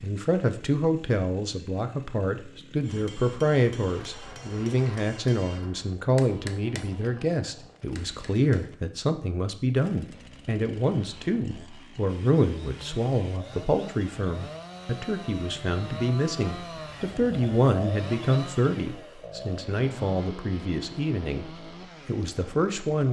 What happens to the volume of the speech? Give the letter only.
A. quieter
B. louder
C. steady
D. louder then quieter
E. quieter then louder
C.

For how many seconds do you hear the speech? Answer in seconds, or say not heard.
23 s.